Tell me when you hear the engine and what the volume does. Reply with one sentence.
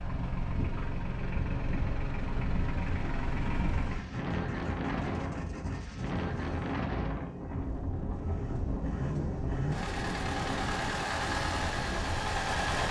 You can hear the engine from 0.0 to 12.8 s, getting quieter then louder.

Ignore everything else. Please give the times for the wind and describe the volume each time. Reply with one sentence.
You can hear the wind from 0.0 to 12.8 s, at a steady volume.